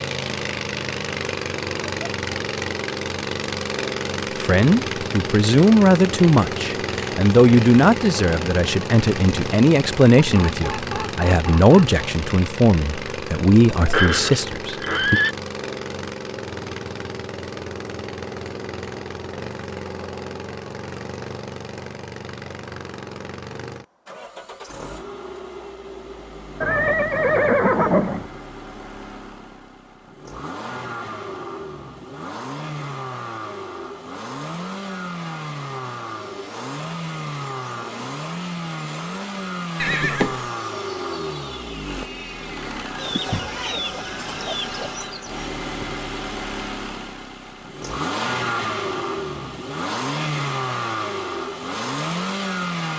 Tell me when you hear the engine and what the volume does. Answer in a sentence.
The engine can be heard from 0.0 to 52.9 s, getting quieter then louder.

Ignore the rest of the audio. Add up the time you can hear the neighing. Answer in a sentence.
The neighing can be heard for 4 seconds in total.